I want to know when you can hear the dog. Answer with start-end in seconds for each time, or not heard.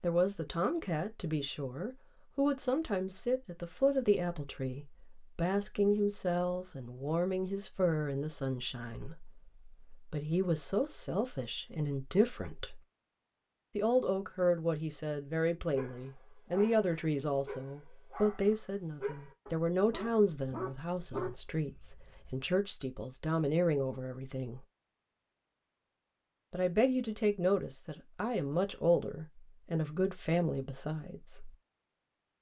15.8-22.4.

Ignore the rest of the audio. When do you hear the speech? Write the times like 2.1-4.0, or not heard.
0.0-12.8, 13.8-24.6, 26.5-31.6.